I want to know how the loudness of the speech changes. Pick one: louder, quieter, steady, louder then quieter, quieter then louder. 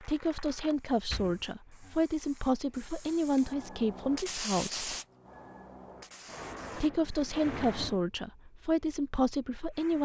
steady.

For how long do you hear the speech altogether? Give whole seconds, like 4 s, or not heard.
8 s.